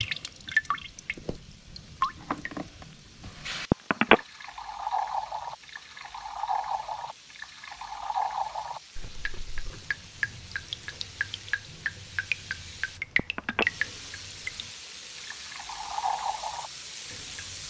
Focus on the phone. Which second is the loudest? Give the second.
4 s.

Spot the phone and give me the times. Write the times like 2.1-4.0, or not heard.
3.7-4.2, 13.2-13.7.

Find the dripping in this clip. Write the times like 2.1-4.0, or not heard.
0.0-17.6.